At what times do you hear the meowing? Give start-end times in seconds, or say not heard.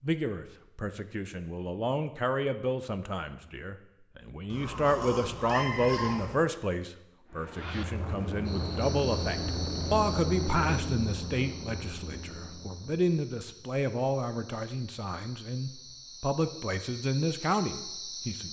4.5-6.3.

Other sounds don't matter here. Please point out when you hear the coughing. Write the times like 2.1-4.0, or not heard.
not heard.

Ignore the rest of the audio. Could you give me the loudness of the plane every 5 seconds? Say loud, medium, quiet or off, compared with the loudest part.
off, loud, loud, off.